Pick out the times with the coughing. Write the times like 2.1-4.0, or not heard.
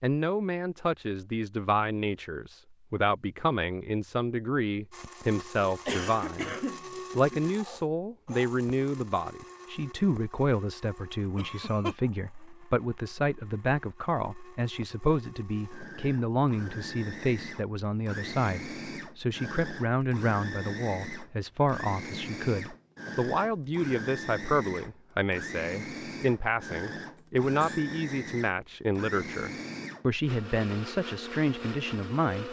5.8-7.5, 11.3-11.9, 27.1-27.9.